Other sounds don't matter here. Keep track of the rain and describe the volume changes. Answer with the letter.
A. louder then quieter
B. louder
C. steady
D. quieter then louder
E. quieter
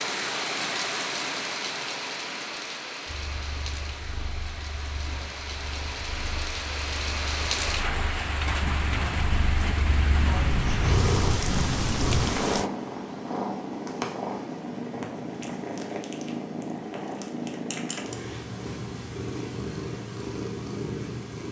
D.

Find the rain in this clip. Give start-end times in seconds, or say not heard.
0.0-12.7.